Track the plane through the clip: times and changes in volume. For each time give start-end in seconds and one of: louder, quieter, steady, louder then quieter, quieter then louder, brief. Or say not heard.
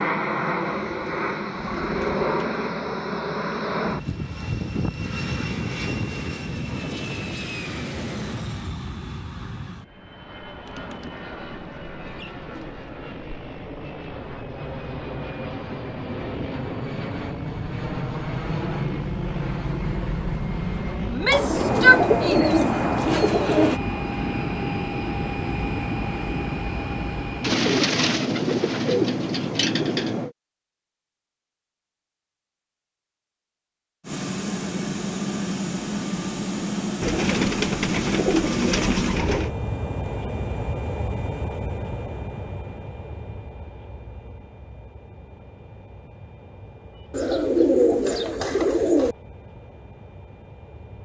0.0-30.3 quieter then louder
34.0-51.0 quieter.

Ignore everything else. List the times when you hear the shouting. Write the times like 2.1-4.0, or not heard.
21.1-22.6.